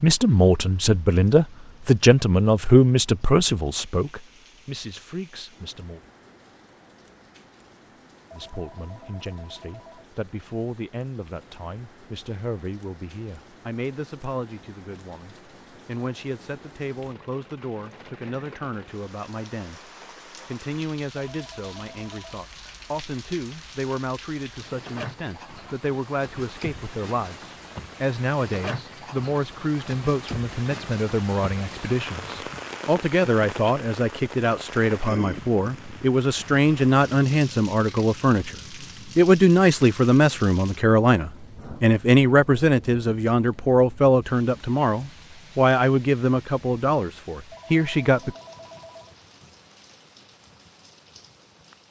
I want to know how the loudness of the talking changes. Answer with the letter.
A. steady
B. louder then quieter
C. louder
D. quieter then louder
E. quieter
D.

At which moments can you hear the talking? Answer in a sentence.
The talking can be heard from 0.0 to 6.0 s, from 8.3 to 38.5 s and from 39.1 to 48.4 s.